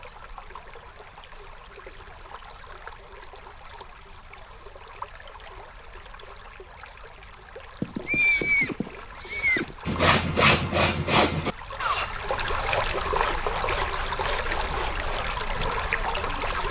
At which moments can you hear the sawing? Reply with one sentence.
The sawing can be heard from 9.8 to 15.8 s.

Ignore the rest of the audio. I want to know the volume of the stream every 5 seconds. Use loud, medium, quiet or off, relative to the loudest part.
quiet, quiet, loud, loud.